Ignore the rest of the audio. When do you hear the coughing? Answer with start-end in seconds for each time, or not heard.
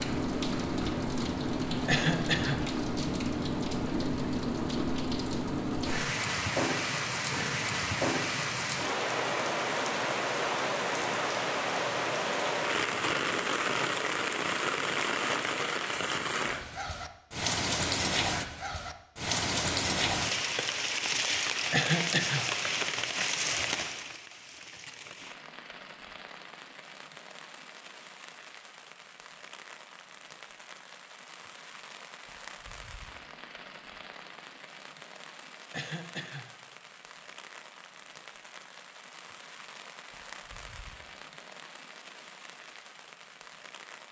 1.9-2.6, 21.7-22.4, 35.7-36.5.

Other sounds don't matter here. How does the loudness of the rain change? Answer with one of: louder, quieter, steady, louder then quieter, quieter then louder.
quieter.